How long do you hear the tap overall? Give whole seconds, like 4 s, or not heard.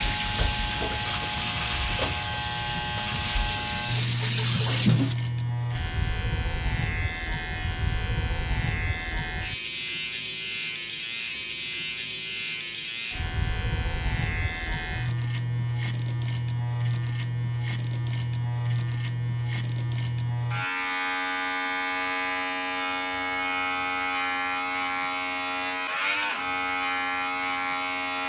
5 s.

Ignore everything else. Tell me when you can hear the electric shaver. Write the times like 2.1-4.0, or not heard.
0.0-28.2.